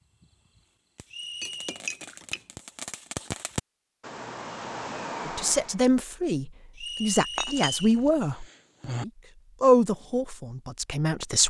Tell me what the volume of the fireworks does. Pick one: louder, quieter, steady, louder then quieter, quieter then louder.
louder.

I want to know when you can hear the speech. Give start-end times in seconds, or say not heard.
5.2-11.4.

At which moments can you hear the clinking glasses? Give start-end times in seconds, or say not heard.
1.4-2.4, 7.3-9.1.